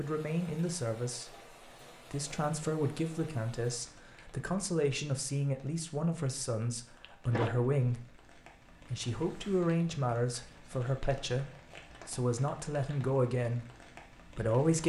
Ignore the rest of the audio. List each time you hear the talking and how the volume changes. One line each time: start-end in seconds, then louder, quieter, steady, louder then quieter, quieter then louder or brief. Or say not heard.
0.0-14.8 steady.